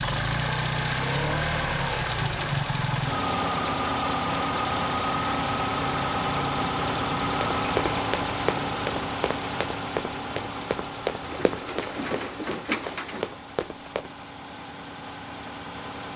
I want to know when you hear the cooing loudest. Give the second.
13 s.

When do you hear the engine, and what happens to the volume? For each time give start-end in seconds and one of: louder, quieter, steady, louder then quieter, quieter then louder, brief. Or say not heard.
0.0-16.1 quieter.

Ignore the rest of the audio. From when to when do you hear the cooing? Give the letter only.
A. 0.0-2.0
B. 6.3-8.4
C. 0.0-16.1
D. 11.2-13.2
D.